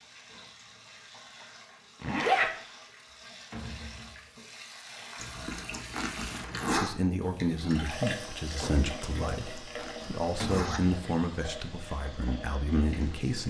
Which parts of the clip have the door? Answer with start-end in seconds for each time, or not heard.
3.5-4.3, 10.4-10.9.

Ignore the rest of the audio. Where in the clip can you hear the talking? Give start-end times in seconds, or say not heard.
6.7-13.4.